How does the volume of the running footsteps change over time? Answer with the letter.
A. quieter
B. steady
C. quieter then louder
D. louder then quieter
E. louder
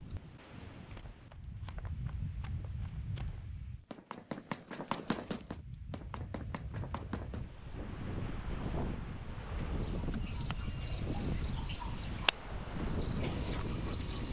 D.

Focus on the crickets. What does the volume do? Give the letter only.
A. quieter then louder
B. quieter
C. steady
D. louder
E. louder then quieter
D.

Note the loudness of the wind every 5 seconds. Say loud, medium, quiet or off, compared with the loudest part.
medium, loud, loud.